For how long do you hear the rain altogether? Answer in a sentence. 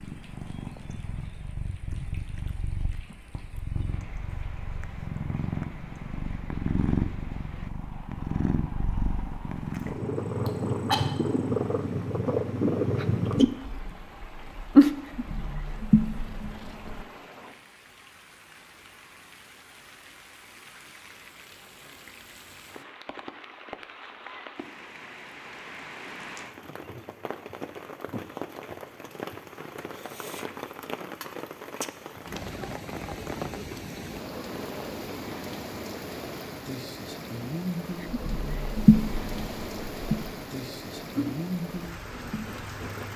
You can hear the rain for 43 seconds altogether.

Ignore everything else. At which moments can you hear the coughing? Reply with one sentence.
You can hear the coughing from 10.4 to 11.1 s.